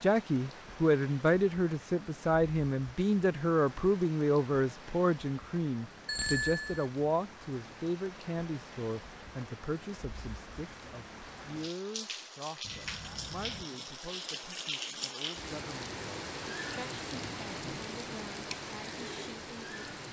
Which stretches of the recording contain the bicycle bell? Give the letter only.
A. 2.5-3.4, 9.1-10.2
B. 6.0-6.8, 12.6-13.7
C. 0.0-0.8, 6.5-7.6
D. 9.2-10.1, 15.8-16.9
B.